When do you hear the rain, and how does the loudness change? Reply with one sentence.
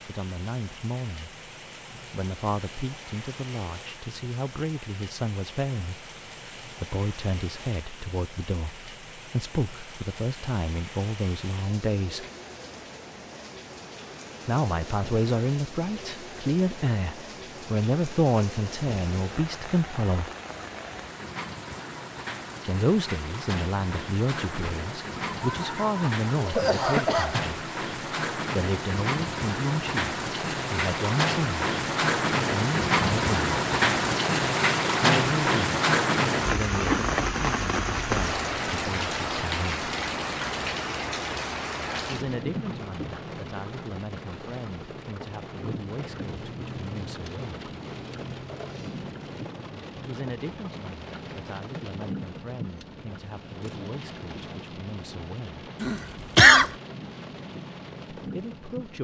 You can hear the rain from 0.0 to 58.9 s, getting louder then quieter.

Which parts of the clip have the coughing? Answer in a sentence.
You can hear the coughing from 25.2 to 27.4 s and from 55.8 to 56.7 s.